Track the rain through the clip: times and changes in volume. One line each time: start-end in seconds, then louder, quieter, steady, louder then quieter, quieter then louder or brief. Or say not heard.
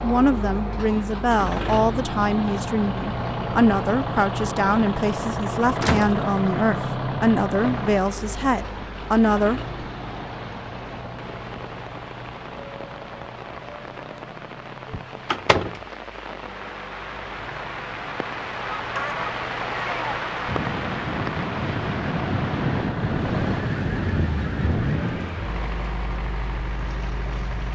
7.5-27.6 louder then quieter.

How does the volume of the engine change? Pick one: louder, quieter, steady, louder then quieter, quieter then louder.
quieter then louder.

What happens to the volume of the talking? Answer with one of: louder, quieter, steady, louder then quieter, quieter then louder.
steady.